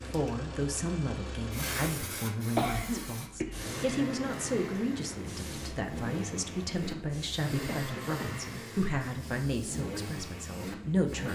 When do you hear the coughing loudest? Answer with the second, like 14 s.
3 s.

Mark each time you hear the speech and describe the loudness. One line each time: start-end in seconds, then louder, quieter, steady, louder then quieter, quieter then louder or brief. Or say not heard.
0.1-11.3 steady.